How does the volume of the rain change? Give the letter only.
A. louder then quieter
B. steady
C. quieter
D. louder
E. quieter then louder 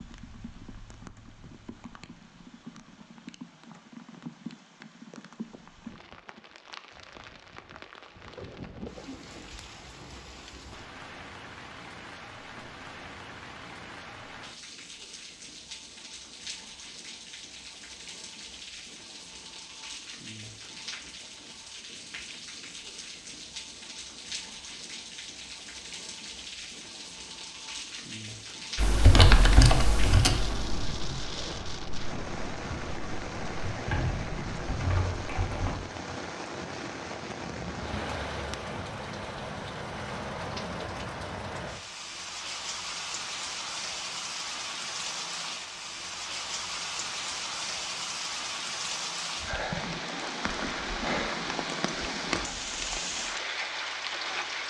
D.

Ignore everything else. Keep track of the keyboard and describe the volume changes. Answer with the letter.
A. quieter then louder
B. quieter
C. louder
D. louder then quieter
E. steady
A.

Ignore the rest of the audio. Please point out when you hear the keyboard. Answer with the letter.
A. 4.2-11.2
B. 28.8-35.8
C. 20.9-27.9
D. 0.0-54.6
B.